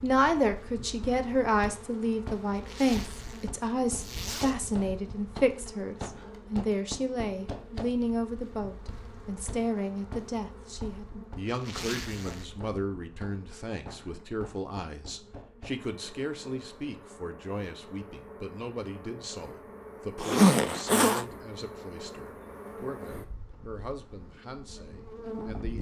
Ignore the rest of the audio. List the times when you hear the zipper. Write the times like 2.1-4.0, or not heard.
2.5-4.5, 11.4-12.5, 20.1-21.2.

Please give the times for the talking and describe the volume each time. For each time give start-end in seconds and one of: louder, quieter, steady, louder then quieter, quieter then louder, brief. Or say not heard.
0.0-25.7 quieter.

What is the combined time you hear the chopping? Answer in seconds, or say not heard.
not heard.